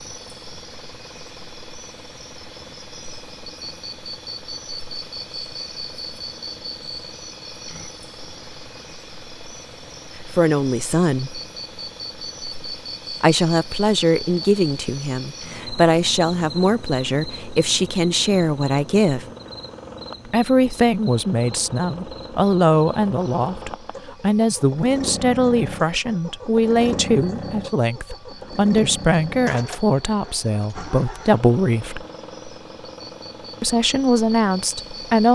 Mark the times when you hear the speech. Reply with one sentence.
You can hear the speech from 10.2 to 11.4 s, from 13.2 to 19.2 s, from 20.2 to 32.0 s and from 33.6 to 35.3 s.